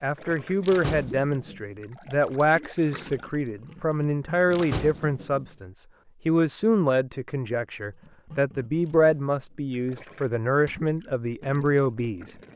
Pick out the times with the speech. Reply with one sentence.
The speech can be heard from 0.0 to 12.3 s.